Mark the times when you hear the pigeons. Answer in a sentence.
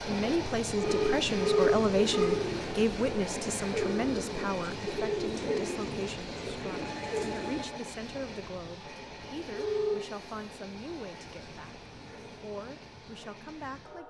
The pigeons can be heard from 0.8 to 7.7 s.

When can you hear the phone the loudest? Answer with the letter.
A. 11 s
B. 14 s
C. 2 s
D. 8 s
C.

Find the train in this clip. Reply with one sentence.
The train can be heard from 0.0 to 14.0 s.